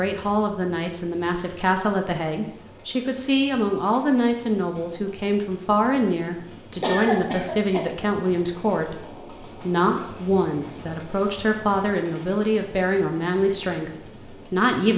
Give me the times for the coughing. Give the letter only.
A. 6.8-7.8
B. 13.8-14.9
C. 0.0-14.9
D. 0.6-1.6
A.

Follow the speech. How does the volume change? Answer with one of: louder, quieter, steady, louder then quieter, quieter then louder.
steady.